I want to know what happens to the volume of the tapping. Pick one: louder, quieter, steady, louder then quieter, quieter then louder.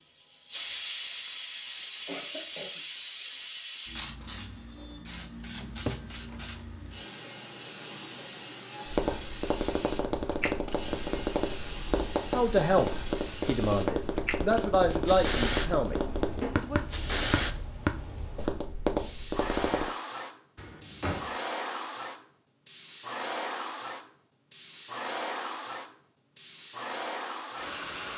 steady.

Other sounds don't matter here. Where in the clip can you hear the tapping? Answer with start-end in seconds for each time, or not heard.
8.8-19.9.